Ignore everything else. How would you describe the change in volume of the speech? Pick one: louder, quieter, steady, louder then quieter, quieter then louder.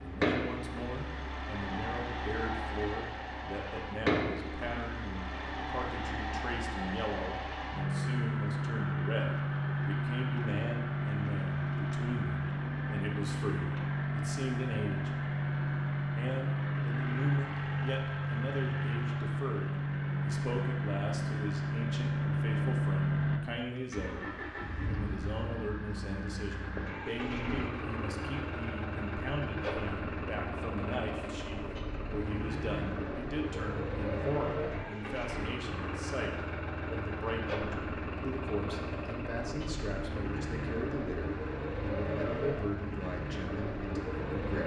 steady.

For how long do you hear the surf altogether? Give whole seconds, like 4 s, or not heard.
not heard.